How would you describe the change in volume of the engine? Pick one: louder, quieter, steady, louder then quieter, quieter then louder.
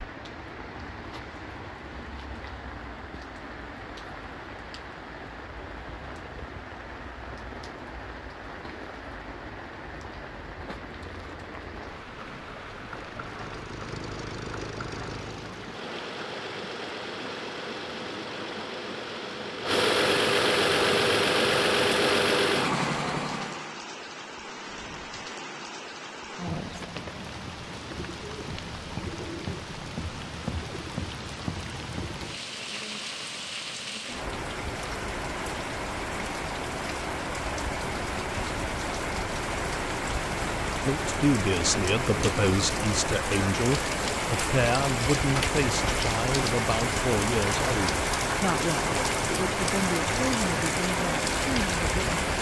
louder.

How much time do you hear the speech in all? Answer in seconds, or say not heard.
11 s.